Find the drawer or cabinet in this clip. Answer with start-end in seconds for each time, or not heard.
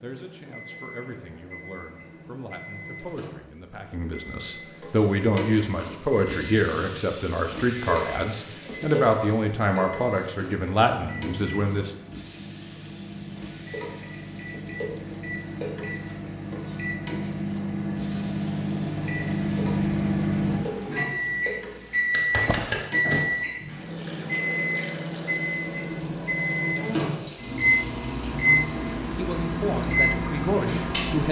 22.4-22.9.